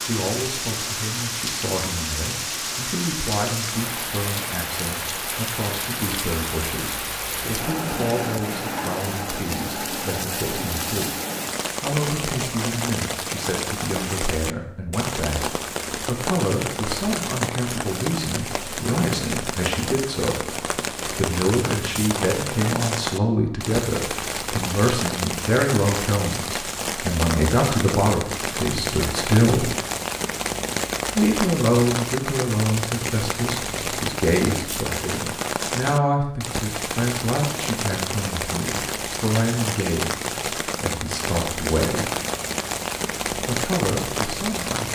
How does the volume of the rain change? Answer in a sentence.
The volume of the rain stays about the same.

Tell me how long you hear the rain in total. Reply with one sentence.
The rain can be heard for 45 seconds in total.